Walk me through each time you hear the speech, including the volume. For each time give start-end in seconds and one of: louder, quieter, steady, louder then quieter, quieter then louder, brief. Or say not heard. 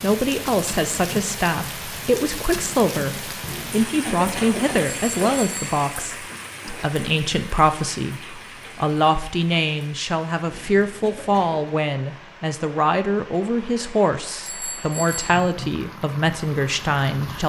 0.0-17.4 steady.